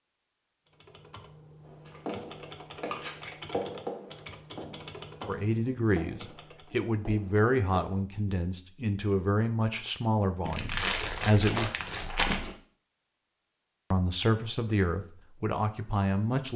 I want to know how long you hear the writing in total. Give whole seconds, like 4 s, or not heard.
6 s.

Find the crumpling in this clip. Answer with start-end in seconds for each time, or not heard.
1.9-3.4, 10.4-12.6.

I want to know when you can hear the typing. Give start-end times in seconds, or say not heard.
0.7-6.8.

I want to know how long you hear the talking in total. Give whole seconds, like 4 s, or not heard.
9 s.